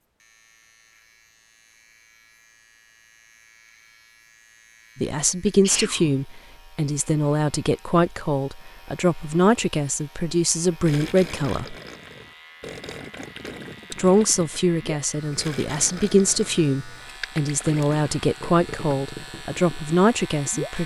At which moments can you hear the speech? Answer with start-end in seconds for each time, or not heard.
5.0-11.8, 13.9-20.8.